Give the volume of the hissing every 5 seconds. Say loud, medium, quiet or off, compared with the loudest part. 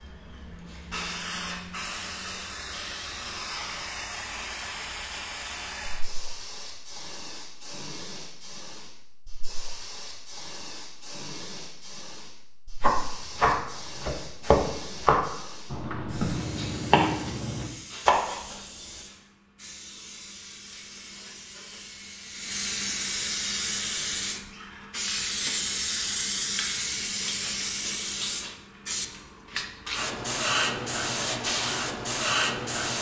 medium, quiet, quiet, quiet, medium, loud, loud.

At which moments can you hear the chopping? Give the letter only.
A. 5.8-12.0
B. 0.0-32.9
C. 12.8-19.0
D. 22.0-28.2
C.